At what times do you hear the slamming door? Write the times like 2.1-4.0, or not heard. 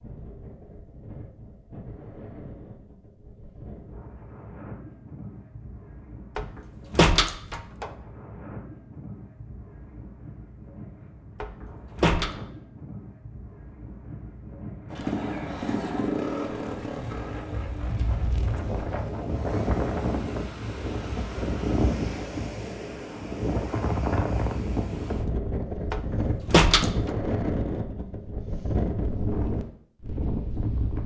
6.3-7.9, 11.4-12.3, 25.9-26.9.